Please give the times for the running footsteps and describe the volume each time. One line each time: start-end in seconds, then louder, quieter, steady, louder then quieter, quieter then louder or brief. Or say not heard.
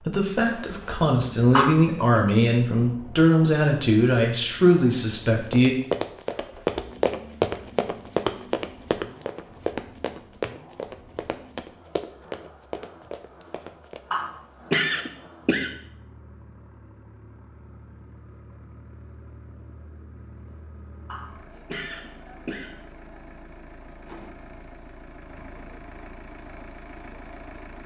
5.2-14.0 quieter.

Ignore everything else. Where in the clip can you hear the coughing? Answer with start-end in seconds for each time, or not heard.
1.5-2.2, 14.1-15.8, 21.1-22.8.